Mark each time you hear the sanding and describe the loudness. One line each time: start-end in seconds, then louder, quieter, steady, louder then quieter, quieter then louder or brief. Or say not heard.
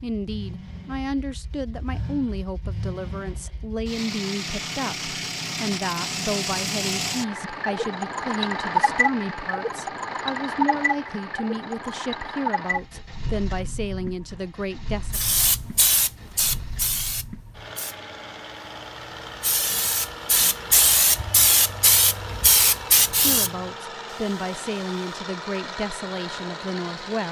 not heard.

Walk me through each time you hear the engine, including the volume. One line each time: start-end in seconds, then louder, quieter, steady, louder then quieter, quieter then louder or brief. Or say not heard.
0.0-27.2 louder then quieter.